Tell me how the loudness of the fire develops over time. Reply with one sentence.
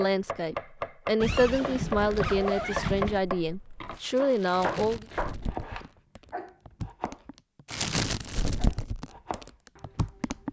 The loudness of the fire goes up, then down.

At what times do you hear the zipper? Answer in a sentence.
The zipper can be heard from 1.2 to 3.2 s.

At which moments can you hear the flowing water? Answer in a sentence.
You can't hear the flowing water here.